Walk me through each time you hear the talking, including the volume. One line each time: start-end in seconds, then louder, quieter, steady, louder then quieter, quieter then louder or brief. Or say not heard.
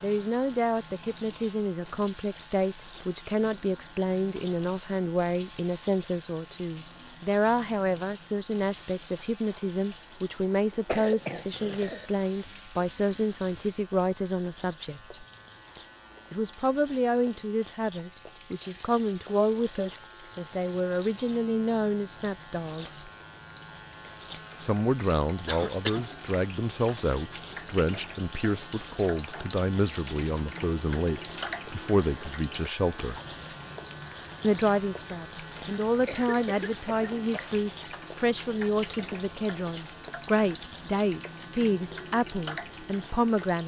0.0-15.2 steady
16.3-23.1 steady
24.6-33.2 steady
34.4-43.6 steady.